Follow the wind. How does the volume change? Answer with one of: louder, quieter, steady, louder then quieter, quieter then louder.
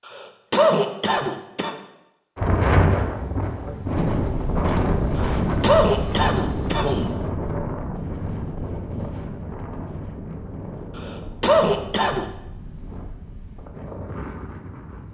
quieter.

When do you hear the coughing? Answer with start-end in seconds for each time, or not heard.
0.1-1.8, 5.2-7.1, 10.9-12.2.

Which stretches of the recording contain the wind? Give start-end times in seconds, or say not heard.
2.4-15.0.